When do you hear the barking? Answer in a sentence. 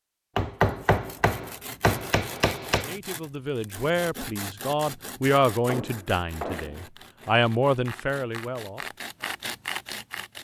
The barking can't be heard in this clip.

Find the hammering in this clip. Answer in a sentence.
The hammering can be heard from 0.3 to 2.9 s and from 5.7 to 6.9 s.